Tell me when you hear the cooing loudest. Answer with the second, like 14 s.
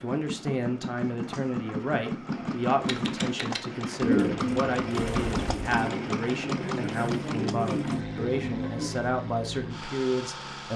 4 s.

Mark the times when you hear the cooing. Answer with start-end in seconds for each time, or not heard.
2.8-8.9.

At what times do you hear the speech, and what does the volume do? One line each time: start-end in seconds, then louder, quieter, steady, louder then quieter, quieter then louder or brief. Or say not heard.
0.0-10.7 steady.